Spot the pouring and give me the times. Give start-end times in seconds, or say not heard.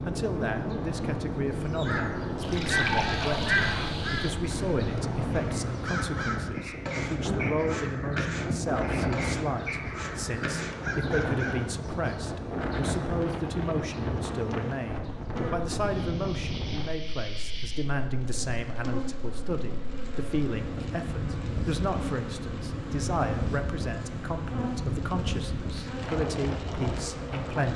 2.4-3.9.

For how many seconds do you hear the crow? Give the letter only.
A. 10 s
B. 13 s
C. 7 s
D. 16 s
A.